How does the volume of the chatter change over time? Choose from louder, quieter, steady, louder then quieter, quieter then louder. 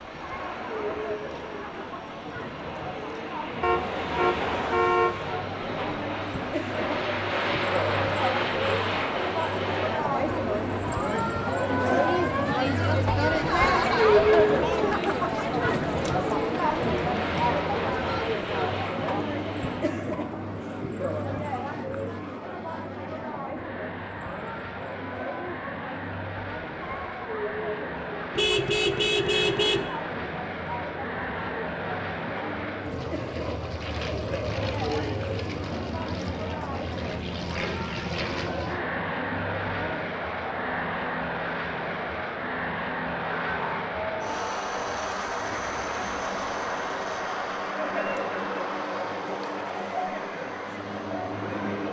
louder then quieter.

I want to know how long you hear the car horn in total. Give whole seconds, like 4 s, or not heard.
3 s.